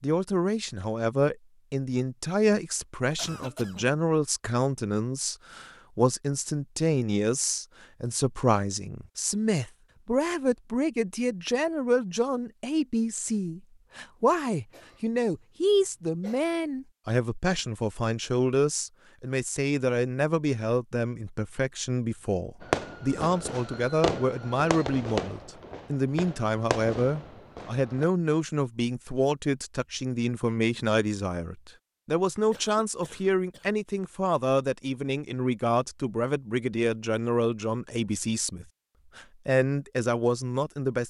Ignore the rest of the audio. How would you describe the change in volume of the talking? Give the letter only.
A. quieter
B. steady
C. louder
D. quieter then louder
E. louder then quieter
B.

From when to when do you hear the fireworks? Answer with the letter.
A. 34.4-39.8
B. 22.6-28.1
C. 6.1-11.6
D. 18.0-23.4
B.